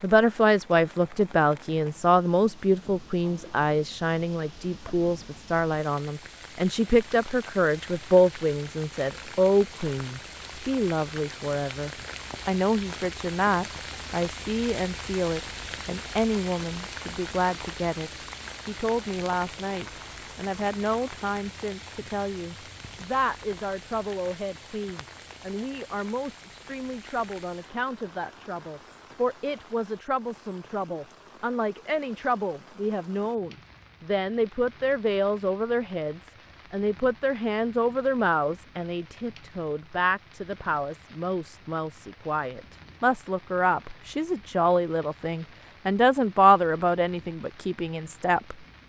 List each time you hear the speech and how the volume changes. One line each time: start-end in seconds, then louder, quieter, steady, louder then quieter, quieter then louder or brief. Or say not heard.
0.0-48.8 quieter then louder.